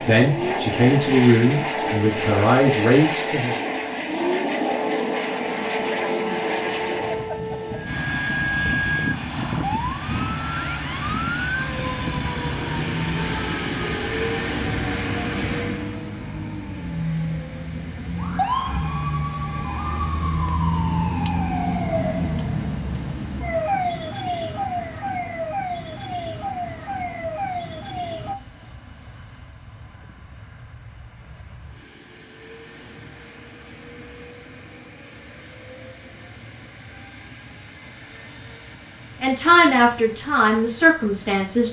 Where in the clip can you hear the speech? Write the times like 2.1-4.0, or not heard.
0.0-3.5, 39.2-41.6.